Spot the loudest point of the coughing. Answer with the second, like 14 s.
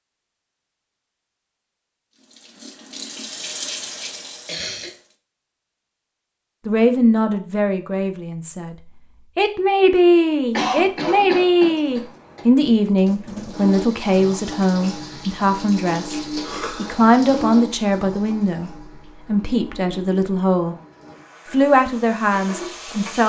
11 s.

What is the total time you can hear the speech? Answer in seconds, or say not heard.
16 s.